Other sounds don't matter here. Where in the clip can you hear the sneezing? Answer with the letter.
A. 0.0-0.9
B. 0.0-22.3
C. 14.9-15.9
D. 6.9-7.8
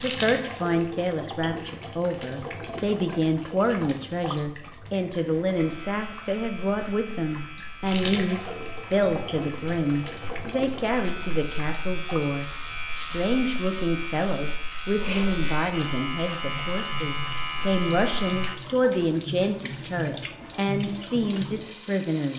C.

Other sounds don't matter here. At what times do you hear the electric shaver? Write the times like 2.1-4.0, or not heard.
5.5-18.6.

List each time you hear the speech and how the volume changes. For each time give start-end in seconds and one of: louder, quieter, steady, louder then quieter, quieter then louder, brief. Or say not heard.
0.0-22.3 steady.